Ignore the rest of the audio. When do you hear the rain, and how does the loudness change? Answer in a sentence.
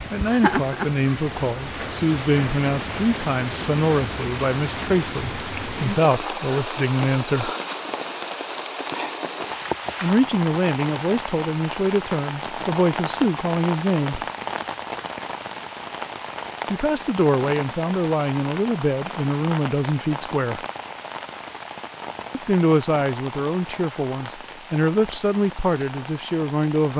The rain can be heard from 0.0 to 26.9 s, getting quieter.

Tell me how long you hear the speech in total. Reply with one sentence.
You can hear the speech for 20 seconds altogether.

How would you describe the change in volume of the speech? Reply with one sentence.
The loudness of the speech stays about the same.